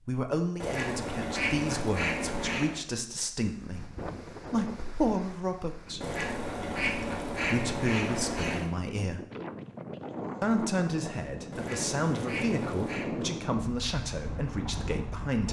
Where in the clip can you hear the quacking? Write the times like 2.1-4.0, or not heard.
0.6-2.8, 6.0-8.7, 11.5-13.1.